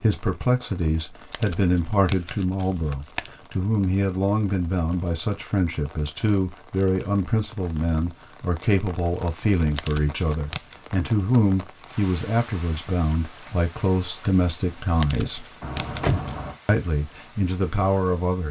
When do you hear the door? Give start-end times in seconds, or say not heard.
15.6-16.6.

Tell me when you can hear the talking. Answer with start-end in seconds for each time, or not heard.
0.0-15.4, 16.6-18.4.